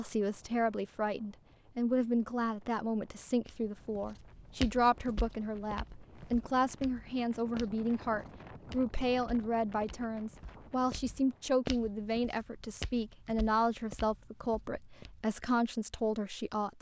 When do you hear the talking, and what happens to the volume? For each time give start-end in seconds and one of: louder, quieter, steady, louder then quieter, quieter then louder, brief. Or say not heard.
0.0-16.7 steady.